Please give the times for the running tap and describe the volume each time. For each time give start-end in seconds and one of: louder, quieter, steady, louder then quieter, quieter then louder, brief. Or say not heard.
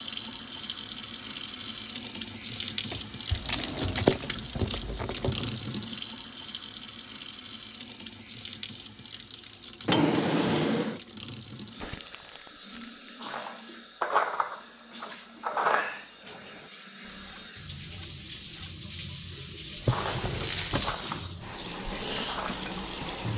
0.0-23.3 quieter then louder.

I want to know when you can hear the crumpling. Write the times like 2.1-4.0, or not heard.
3.3-5.6, 11.8-13.1, 20.2-21.2.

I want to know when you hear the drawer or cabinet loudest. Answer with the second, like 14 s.
10 s.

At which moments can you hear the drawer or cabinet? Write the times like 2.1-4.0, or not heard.
2.9-4.2, 9.8-11.0, 19.8-21.0.